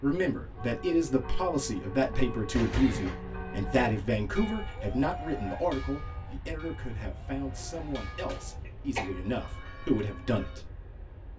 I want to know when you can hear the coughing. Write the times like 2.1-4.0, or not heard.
2.5-3.2, 7.5-9.1.